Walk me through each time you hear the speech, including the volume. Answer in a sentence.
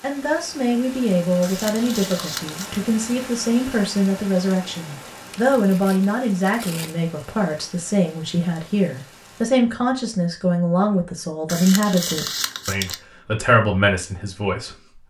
The speech can be heard from 0.0 to 15.0 s, at a steady volume.